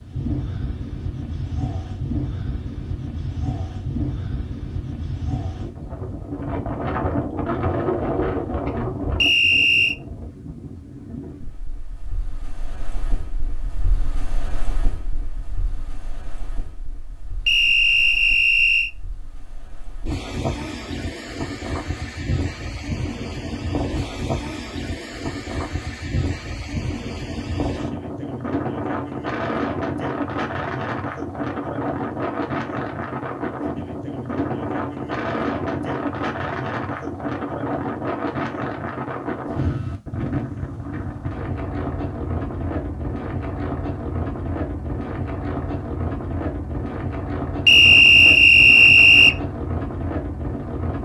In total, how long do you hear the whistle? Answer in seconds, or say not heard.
4 s.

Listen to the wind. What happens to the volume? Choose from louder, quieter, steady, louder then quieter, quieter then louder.
quieter then louder.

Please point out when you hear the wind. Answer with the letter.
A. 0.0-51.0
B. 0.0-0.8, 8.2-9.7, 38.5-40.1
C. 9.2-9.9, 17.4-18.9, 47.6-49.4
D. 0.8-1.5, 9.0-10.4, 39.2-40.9
A.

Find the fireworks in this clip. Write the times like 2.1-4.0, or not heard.
not heard.